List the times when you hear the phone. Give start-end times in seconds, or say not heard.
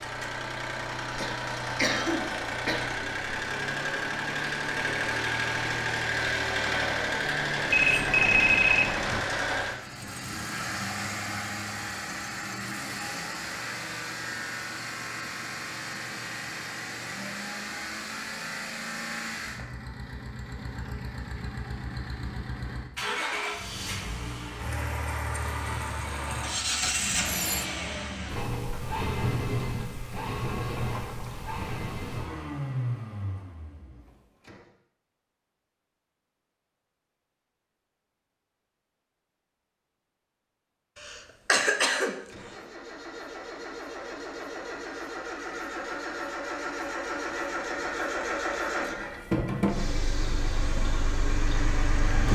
7.7-9.2, 26.8-27.7, 49.0-49.5.